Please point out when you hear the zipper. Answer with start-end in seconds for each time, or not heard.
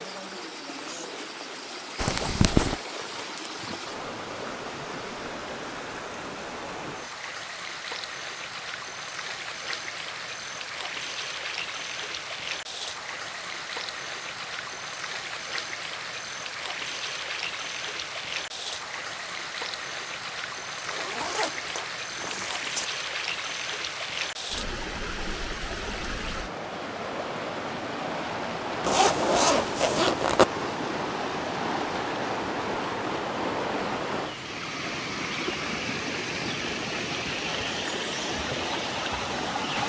1.9-2.8, 20.9-22.9, 28.8-30.4.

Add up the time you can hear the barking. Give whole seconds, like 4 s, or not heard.
not heard.